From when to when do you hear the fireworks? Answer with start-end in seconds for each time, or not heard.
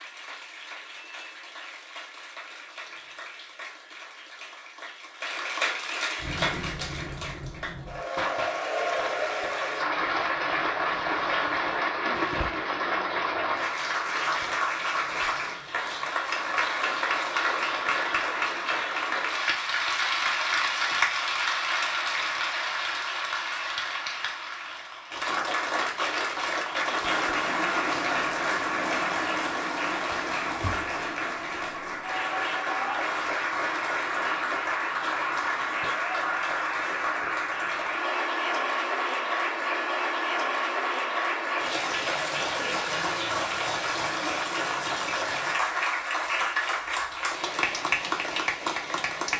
6.2-12.7.